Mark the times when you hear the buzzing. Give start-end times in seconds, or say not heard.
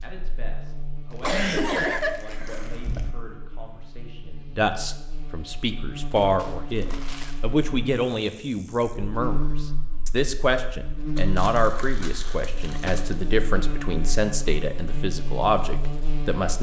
0.0-16.5.